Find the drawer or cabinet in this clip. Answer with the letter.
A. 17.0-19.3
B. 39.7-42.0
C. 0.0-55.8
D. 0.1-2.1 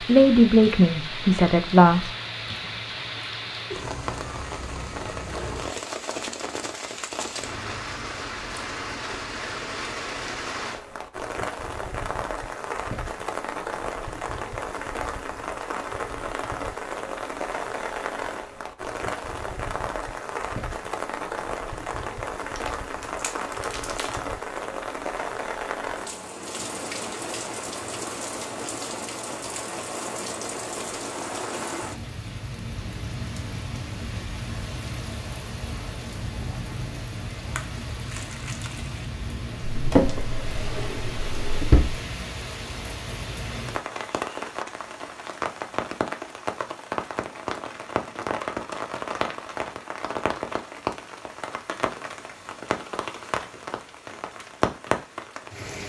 B.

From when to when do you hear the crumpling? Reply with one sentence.
The crumpling can be heard from 22.6 to 24.3 s and from 37.4 to 39.0 s.